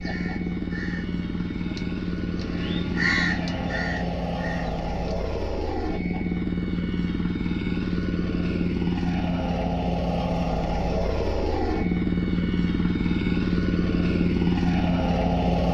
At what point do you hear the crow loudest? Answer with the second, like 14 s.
3 s.